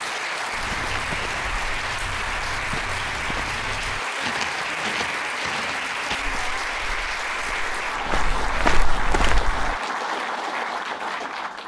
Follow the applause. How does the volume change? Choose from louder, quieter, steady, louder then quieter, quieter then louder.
steady.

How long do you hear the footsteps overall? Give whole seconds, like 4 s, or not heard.
9 s.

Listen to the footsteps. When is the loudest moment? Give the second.
9 s.